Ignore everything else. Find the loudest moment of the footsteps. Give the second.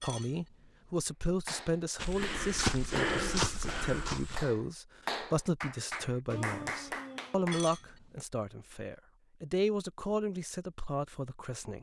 3 s.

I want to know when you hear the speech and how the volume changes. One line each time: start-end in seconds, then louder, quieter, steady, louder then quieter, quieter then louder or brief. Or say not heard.
0.0-11.7 steady.